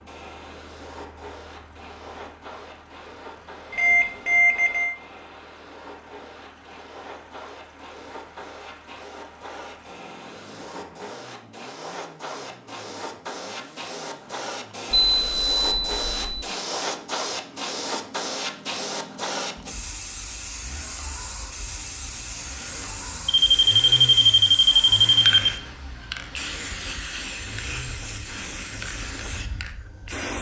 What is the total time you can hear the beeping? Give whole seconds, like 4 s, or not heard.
5 s.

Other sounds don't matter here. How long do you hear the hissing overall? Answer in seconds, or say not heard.
30 s.